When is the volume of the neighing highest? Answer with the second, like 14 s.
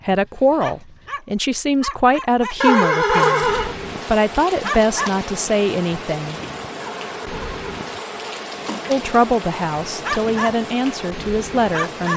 3 s.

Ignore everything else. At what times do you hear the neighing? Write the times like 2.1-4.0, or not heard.
2.6-3.8, 6.8-8.8.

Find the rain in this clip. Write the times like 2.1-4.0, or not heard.
3.2-12.1.